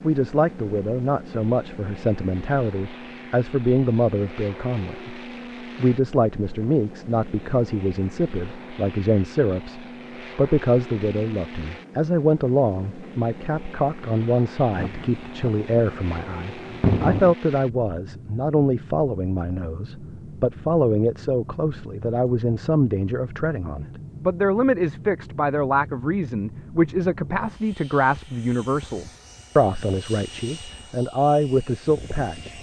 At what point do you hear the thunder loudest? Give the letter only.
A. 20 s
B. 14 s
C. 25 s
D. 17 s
D.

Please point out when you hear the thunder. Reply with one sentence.
The thunder can be heard from 14.7 to 17.4 s.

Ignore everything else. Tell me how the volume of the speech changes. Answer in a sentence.
The volume of the speech stays about the same.